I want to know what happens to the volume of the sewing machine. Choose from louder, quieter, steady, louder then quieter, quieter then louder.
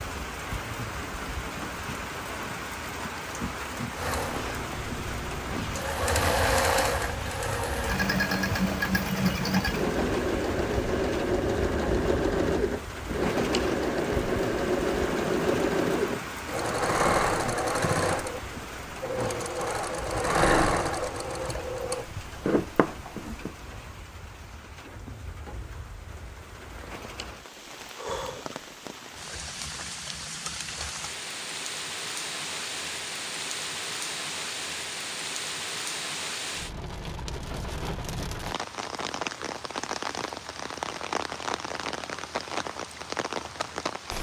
steady.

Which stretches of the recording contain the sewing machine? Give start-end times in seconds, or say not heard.
4.0-23.6.